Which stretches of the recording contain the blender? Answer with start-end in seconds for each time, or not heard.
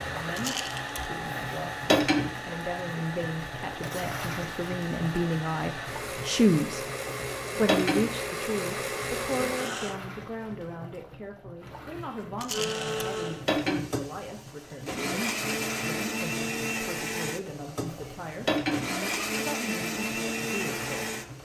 0.0-10.0, 12.5-21.4.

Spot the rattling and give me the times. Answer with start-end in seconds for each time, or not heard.
0.3-1.1, 12.3-12.9.